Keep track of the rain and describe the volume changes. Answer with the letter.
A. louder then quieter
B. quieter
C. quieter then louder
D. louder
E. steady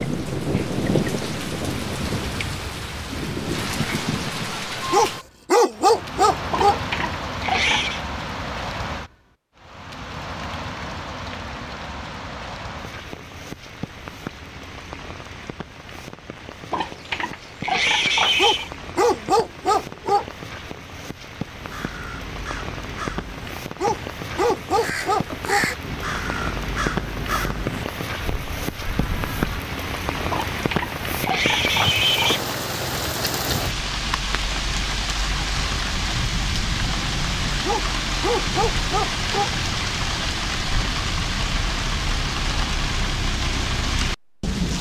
C.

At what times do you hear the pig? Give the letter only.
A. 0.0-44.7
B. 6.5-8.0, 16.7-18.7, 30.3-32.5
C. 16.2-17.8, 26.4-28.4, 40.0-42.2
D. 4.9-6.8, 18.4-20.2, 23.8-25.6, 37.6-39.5
B.